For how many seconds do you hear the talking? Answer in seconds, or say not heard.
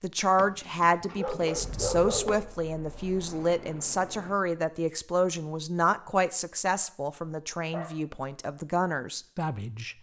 10 s.